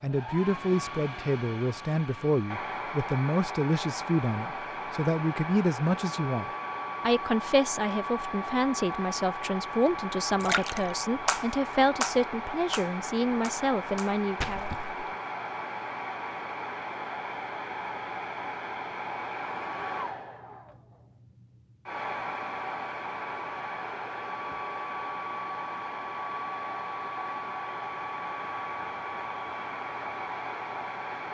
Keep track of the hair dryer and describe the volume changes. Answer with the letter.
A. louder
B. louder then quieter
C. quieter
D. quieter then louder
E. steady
E.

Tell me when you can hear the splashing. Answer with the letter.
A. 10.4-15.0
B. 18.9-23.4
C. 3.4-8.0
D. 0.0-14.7
A.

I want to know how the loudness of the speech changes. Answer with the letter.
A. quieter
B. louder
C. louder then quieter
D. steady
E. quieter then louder
D.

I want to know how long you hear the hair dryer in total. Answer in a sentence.
The hair dryer can be heard for 31 seconds in total.